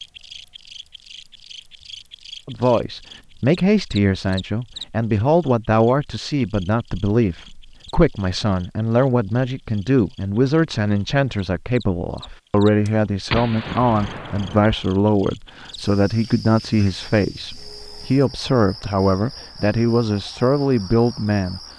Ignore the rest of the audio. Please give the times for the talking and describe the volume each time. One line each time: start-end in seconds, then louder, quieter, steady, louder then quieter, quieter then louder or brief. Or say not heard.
2.5-21.6 steady.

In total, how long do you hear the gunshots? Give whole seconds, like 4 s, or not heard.
2 s.